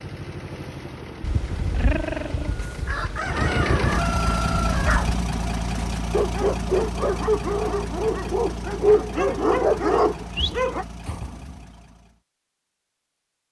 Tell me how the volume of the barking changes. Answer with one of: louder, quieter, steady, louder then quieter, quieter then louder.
louder.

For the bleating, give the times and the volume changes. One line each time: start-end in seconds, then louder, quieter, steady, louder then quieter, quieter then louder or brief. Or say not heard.
not heard.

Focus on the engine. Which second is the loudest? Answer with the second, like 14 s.
4 s.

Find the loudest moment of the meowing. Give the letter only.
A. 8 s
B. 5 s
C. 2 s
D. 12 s
C.